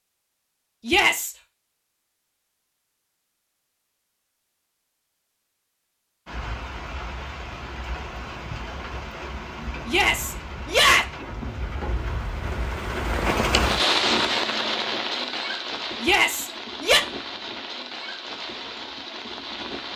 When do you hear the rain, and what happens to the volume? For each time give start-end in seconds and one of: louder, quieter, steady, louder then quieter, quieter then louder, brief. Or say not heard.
6.2-19.9 louder then quieter.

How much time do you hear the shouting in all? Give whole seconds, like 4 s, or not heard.
3 s.